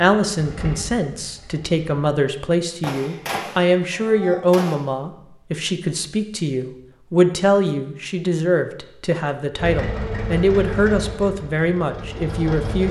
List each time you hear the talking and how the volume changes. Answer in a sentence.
The talking can be heard from 0.0 to 12.8 s, at a steady volume.